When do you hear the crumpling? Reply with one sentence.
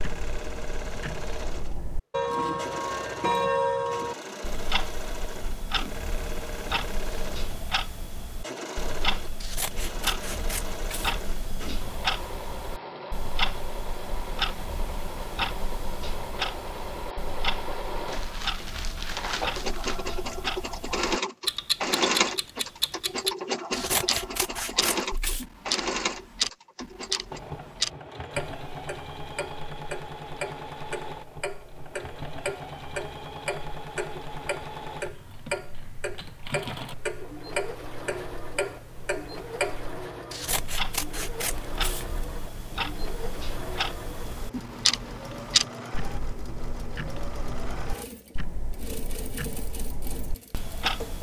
You can hear the crumpling from 18.1 to 20.1 s.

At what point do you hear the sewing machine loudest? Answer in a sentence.
The loudest moment of the sewing machine is at 22 seconds.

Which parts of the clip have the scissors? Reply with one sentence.
You can hear the scissors from 9.4 to 11.2 s, from 23.7 to 25.5 s and from 40.3 to 42.2 s.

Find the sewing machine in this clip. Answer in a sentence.
The sewing machine can be heard from 0.0 to 51.1 s.